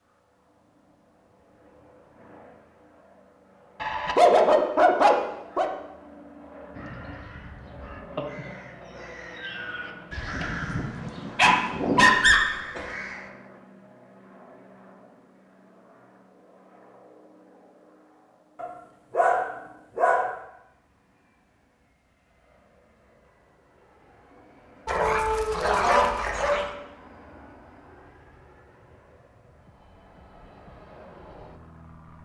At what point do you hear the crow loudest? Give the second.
12 s.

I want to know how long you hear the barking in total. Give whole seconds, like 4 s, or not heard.
7 s.